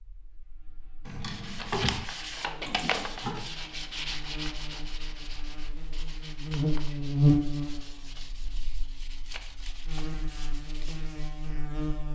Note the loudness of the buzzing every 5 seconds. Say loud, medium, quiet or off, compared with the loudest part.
quiet, loud, medium.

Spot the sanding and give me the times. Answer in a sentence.
You can hear the sanding from 1.3 to 11.6 s.